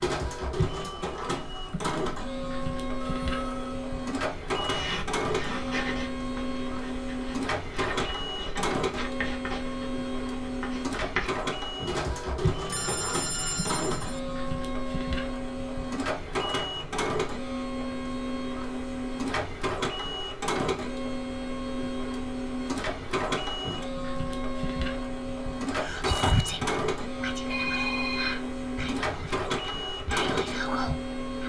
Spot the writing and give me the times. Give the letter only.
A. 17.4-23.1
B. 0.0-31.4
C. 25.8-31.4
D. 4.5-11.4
D.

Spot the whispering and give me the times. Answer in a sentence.
The whispering can be heard from 25.8 to 31.4 s.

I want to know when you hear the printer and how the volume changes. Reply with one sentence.
You can hear the printer from 0.0 to 31.4 s, at a steady volume.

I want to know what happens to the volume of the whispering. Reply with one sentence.
The loudness of the whispering goes down, then up.